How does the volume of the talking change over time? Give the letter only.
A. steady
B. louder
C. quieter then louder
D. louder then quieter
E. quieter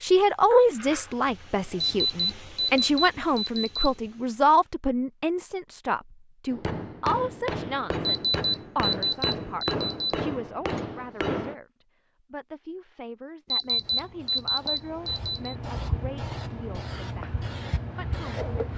E.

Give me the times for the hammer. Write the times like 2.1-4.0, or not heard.
6.5-11.6.